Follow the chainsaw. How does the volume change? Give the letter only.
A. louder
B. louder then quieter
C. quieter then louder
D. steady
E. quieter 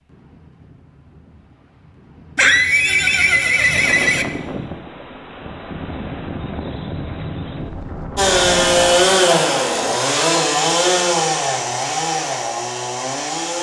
E.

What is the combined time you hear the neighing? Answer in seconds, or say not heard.
2 s.